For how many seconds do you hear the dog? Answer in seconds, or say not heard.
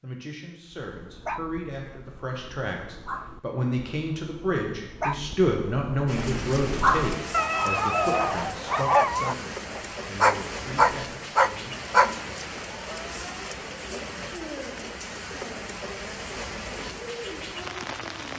11 s.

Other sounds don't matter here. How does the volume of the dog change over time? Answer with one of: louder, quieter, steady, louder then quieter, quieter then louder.
louder.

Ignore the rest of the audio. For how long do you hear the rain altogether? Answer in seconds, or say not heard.
12 s.